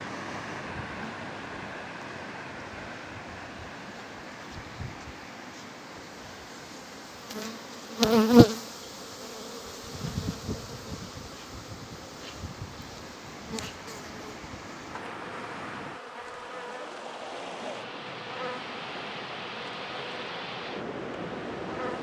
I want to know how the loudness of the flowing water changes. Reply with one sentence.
The volume of the flowing water goes down, then up.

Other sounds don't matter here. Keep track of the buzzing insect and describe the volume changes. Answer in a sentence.
The volume of the buzzing insect goes up, then down.